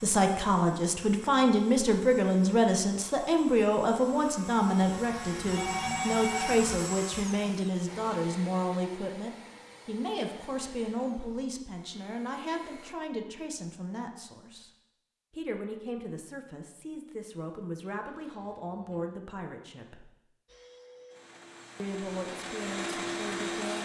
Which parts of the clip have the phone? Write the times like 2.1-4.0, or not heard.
4.8-6.7, 18.1-19.1.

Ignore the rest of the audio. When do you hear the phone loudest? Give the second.
6 s.